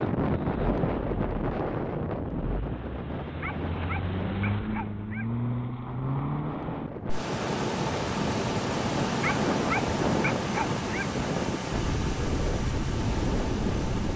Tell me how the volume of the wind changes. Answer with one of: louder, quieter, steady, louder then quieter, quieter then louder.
quieter then louder.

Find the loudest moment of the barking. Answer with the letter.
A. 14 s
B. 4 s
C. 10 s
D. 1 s
C.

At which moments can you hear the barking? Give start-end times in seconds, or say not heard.
3.4-5.3, 9.2-11.1.